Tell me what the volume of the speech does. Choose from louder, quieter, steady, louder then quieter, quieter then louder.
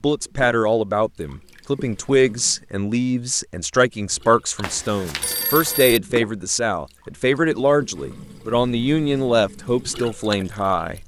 steady.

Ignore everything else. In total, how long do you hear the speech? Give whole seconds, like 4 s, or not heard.
11 s.